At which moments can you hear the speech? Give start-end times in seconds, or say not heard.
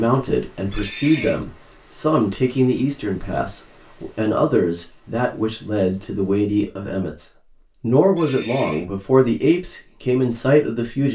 0.0-11.0.